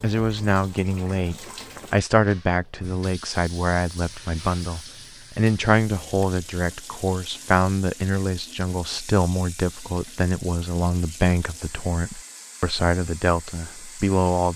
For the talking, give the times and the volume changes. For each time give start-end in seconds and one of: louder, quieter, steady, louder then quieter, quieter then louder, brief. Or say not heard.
0.0-14.5 steady.